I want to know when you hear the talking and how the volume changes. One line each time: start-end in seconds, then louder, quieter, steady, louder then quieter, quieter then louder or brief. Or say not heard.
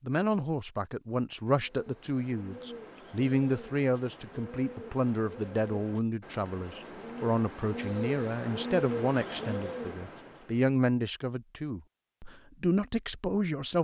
0.0-13.7 steady.